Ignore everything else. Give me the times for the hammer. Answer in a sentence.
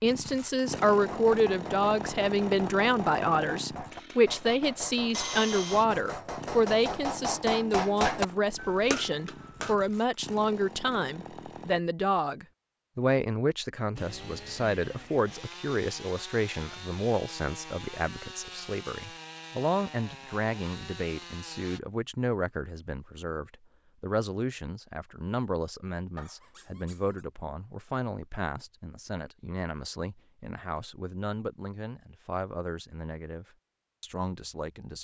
You can hear the hammer from 1.1 to 9.8 s.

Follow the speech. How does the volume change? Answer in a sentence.
The volume of the speech goes down.